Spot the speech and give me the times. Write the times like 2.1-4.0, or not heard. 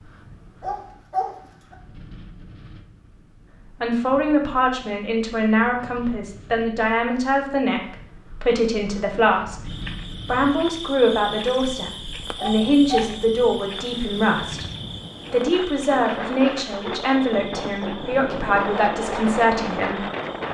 3.8-9.6, 10.2-14.7, 15.3-20.1.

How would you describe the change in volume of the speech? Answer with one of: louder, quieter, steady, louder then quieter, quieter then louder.
steady.